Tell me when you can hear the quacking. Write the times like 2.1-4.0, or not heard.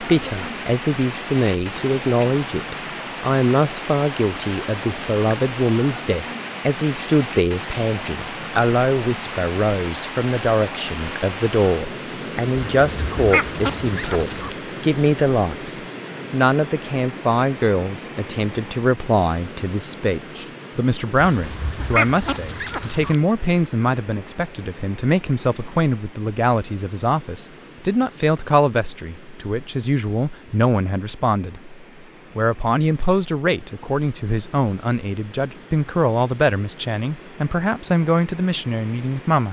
12.8-14.6, 21.2-23.1.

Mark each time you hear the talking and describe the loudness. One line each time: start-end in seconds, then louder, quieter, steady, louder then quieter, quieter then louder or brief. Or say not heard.
0.0-15.7 steady
16.3-39.4 steady.